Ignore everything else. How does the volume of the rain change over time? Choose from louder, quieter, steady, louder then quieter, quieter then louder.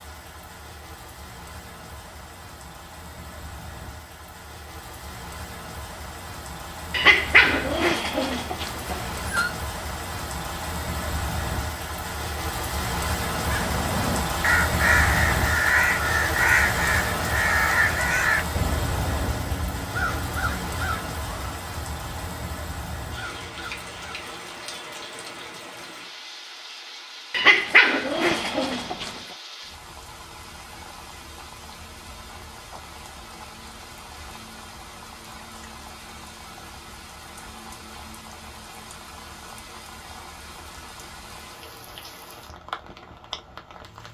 louder then quieter.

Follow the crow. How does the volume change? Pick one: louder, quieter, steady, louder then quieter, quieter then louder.
quieter.